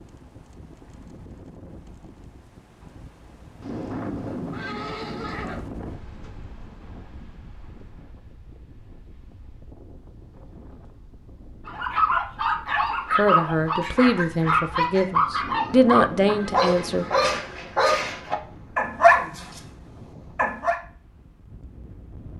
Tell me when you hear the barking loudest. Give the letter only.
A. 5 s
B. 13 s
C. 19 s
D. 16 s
C.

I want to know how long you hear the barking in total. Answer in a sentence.
You can hear the barking for 9 seconds altogether.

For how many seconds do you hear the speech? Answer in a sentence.
The speech can be heard for 4 seconds in total.